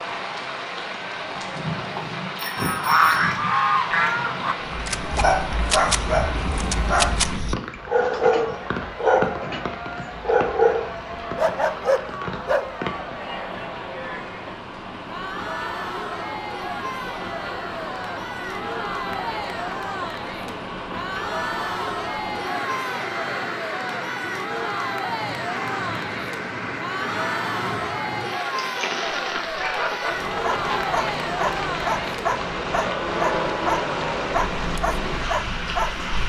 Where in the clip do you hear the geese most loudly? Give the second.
3 s.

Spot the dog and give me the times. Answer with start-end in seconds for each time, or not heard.
4.7-9.7, 10.2-12.7, 30.4-36.2.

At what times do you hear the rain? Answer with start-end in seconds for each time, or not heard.
0.0-36.2.